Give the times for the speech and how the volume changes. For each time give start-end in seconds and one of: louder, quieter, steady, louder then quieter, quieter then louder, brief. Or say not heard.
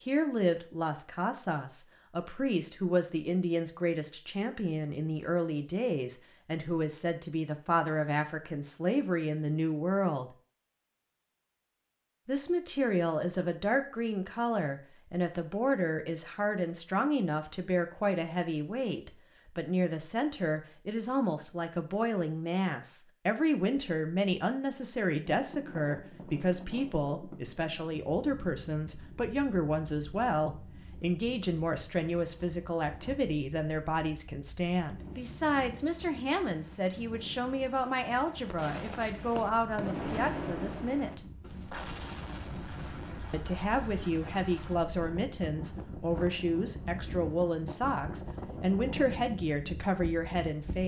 0.0-10.3 steady
12.2-41.2 steady
43.3-50.8 steady.